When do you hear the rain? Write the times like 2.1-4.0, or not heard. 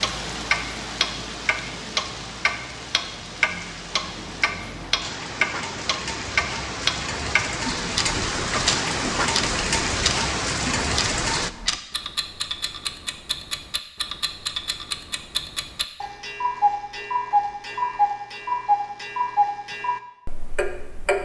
0.0-11.5.